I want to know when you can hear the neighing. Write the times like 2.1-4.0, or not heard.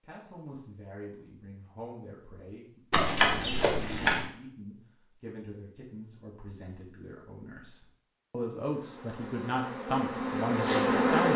2.9-4.3.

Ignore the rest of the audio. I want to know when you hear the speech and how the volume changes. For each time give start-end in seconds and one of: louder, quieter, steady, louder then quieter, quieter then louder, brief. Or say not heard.
0.0-11.3 louder.